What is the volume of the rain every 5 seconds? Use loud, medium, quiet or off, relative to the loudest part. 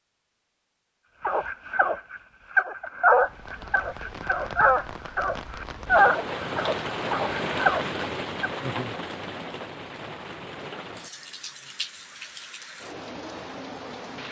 medium, loud, medium.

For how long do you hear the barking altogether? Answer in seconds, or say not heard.
7 s.